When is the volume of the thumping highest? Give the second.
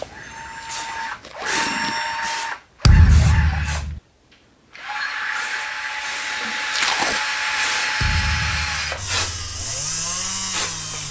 3 s.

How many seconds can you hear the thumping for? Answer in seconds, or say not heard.
2 s.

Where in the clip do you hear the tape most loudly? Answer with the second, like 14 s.
7 s.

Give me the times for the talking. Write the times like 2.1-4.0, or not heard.
not heard.